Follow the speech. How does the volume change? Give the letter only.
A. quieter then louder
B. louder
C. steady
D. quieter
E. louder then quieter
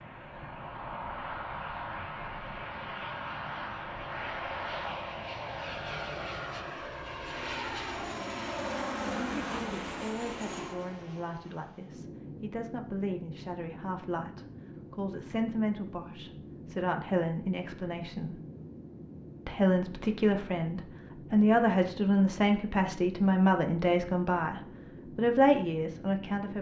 B.